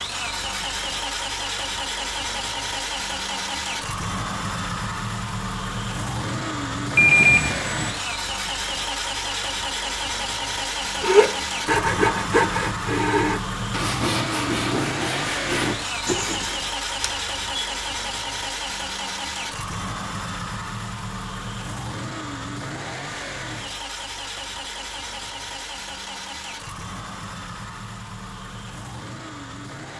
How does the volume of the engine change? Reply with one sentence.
The loudness of the engine goes down.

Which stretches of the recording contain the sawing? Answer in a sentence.
You can hear the sawing from 11.0 to 16.6 s.